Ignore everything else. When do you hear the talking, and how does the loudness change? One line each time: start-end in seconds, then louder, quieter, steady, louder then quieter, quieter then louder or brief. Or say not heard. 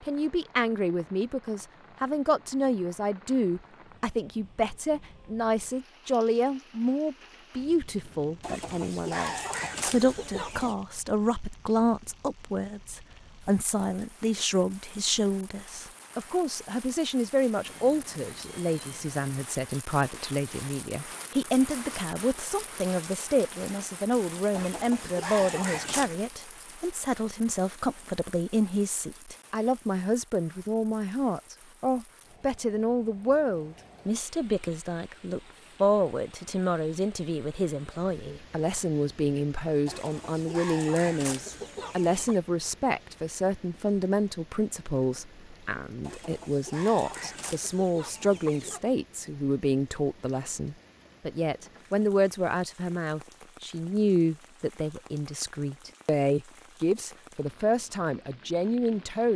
0.0-59.3 steady.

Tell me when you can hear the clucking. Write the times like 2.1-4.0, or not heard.
8.4-10.8, 24.5-26.2, 39.9-42.4, 46.0-48.9.